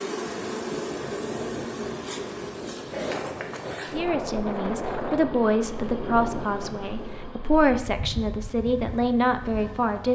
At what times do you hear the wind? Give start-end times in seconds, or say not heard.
0.1-7.3.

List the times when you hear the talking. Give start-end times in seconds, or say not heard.
3.9-10.1.